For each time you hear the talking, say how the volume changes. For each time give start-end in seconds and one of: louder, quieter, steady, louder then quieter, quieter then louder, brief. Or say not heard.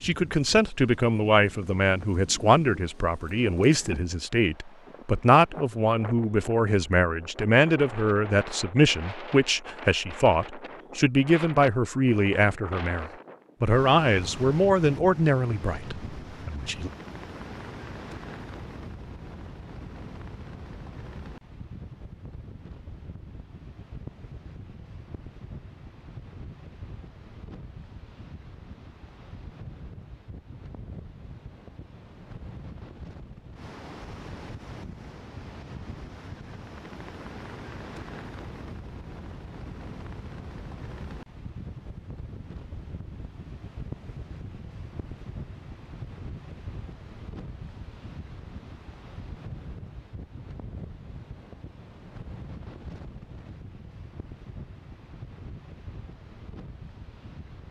0.0-16.9 steady.